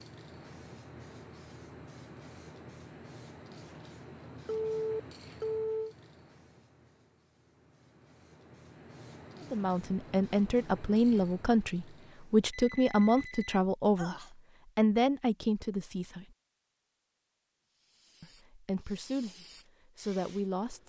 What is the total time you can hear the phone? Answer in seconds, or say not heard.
3 s.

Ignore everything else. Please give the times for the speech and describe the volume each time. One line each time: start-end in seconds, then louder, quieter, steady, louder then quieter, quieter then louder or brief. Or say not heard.
9.5-14.2 steady
14.8-16.2 brief
18.2-20.8 brief.